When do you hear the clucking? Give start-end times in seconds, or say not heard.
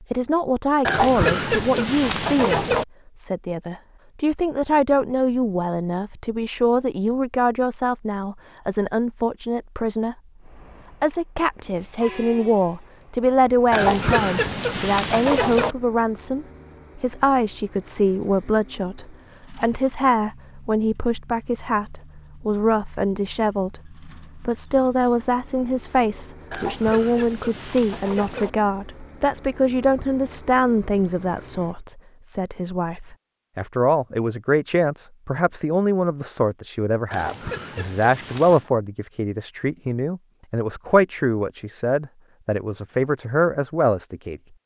0.8-2.9, 13.7-15.8, 26.5-28.5, 37.1-38.7.